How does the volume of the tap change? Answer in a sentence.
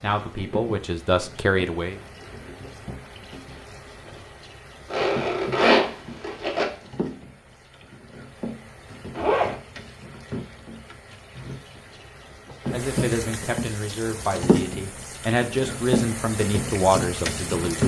The volume of the tap goes up.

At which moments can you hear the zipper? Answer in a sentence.
The zipper can be heard from 4.9 to 6.7 s and from 9.1 to 9.6 s.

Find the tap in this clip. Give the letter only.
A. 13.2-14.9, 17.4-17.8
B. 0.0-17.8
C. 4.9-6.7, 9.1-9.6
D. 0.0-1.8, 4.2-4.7
B.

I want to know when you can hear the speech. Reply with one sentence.
You can hear the speech from 0.0 to 1.9 s and from 12.7 to 17.8 s.